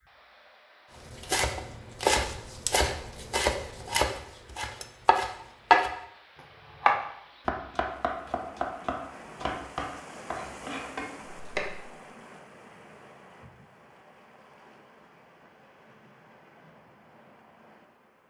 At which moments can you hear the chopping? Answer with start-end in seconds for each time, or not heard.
1.1-6.0, 6.8-11.8.